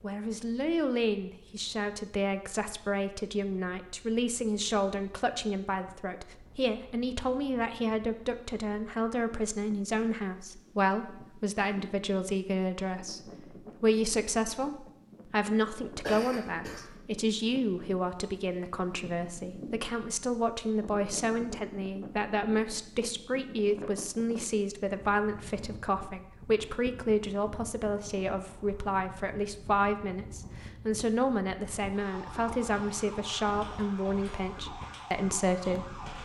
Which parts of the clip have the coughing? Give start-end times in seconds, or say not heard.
16.0-16.9.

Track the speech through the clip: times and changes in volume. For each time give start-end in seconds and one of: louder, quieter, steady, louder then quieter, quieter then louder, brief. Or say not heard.
0.0-36.0 steady.